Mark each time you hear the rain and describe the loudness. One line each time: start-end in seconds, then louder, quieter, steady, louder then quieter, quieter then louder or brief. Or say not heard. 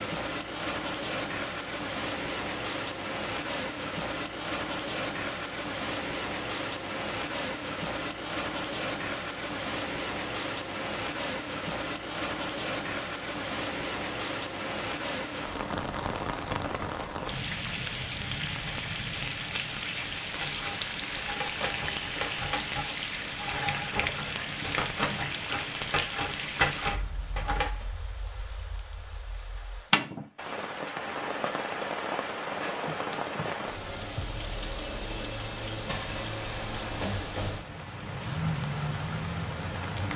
0.0-40.1 steady.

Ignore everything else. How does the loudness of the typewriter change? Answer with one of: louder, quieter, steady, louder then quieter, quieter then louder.
louder.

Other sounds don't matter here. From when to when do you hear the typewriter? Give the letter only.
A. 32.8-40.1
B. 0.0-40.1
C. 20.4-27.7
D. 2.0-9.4
C.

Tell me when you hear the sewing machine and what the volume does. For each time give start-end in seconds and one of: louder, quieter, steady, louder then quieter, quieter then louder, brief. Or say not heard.
not heard.